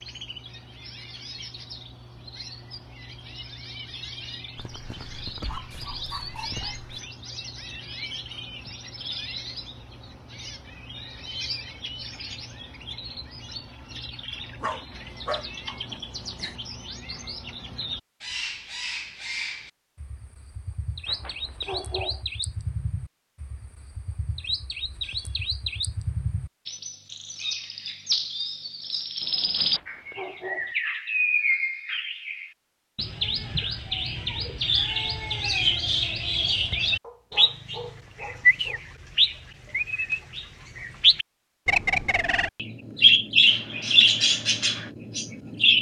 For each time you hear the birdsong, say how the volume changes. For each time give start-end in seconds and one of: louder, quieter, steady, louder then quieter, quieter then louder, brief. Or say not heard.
0.0-45.7 louder.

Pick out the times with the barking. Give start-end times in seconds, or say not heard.
4.5-7.0, 14.6-16.6, 21.1-22.2, 29.6-30.8, 37.0-38.8.